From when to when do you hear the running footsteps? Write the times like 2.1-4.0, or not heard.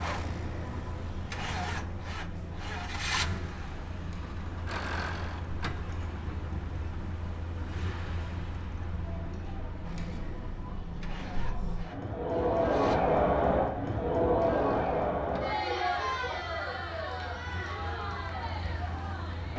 not heard.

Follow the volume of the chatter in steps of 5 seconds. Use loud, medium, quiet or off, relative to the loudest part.
quiet, quiet, loud, medium.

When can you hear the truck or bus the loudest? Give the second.
3 s.